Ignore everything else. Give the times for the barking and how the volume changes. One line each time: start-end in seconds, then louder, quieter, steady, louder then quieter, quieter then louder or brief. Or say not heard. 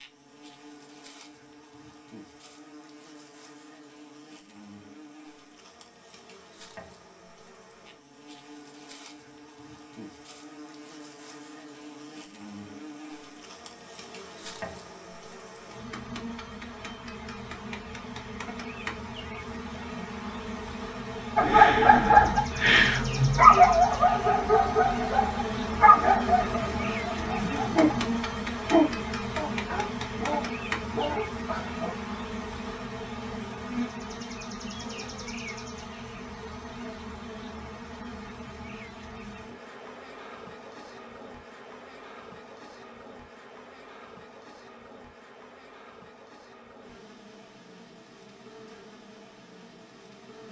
21.4-31.9 quieter.